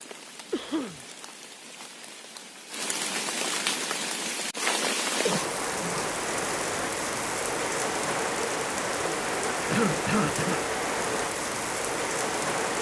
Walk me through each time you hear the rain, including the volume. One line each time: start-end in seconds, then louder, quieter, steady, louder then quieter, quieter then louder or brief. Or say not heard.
0.0-12.7 louder.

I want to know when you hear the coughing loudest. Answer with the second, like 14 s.
10 s.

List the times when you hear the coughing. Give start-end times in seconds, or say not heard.
0.5-1.0, 5.2-6.0, 9.7-10.6.